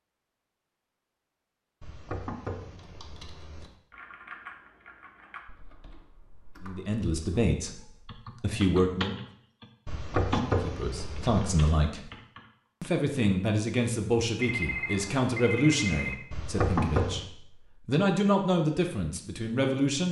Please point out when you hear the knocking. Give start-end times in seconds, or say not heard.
1.8-3.7, 9.8-11.8, 16.3-17.2.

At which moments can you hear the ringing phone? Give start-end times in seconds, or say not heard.
14.3-16.1.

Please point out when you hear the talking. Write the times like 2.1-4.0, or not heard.
6.6-9.2, 10.3-12.1, 12.8-20.0.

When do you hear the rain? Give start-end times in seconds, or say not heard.
not heard.